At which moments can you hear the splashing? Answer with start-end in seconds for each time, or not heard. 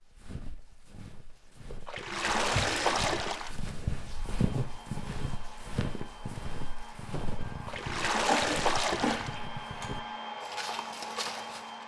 1.9-3.5, 7.7-9.3.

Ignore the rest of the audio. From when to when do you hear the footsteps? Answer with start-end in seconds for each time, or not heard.
0.0-11.8.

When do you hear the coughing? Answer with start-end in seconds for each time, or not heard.
2.5-3.1, 8.2-9.8.